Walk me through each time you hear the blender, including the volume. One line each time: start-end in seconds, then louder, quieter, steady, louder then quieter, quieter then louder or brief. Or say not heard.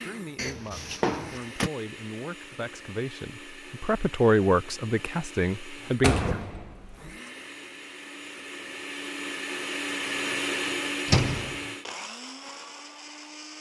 0.0-13.5 louder.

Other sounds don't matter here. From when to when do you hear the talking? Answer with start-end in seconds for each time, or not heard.
0.0-6.4.